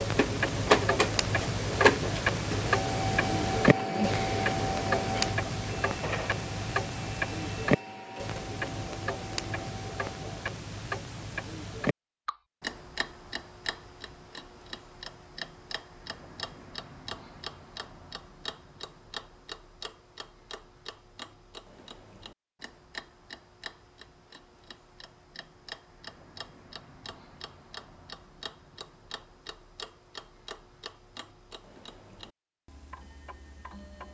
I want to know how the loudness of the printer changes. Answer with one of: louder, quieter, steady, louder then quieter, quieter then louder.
quieter.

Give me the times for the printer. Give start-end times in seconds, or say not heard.
0.0-10.3.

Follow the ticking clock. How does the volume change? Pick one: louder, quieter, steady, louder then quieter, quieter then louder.
quieter.